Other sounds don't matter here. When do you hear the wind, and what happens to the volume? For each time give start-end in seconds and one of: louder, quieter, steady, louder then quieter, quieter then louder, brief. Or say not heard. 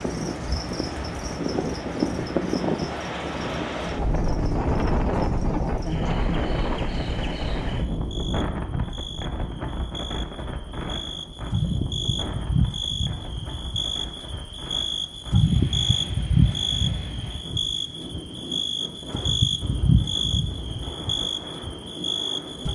0.0-22.6 quieter.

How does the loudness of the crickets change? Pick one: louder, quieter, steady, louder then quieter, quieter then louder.
louder.